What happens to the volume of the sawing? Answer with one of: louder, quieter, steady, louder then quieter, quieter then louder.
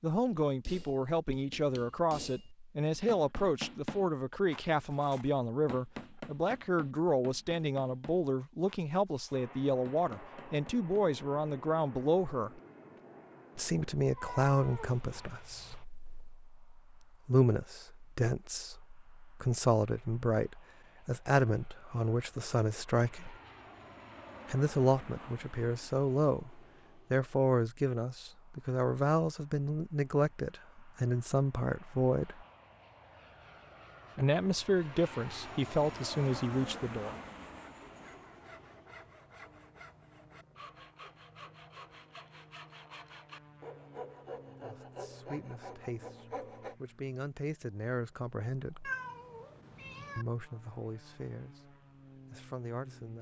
louder.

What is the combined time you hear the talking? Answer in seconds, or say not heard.
41 s.